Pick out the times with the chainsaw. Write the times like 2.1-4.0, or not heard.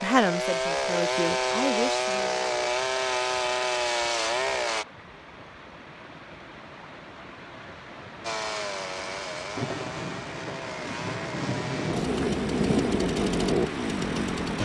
0.0-4.8, 8.2-14.6.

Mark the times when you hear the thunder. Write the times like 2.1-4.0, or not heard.
9.6-13.1.